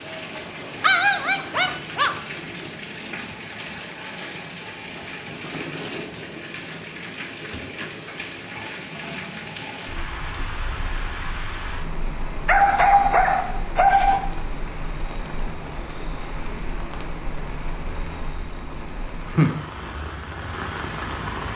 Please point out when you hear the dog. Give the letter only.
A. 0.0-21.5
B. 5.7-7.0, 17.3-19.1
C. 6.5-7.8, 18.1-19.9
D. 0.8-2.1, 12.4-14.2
D.